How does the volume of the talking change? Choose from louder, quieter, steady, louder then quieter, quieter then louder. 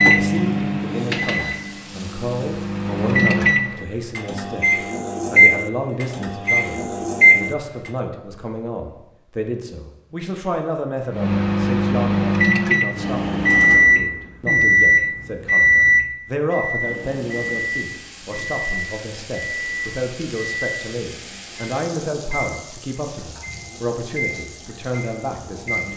steady.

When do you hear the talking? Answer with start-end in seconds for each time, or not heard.
0.0-25.9.